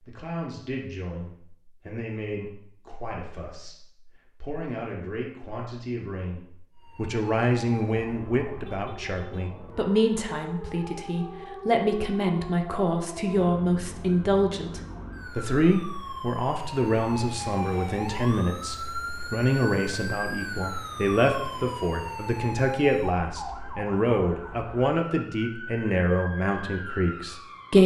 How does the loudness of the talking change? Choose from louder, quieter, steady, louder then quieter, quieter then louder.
louder.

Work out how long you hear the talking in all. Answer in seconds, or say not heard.
28 s.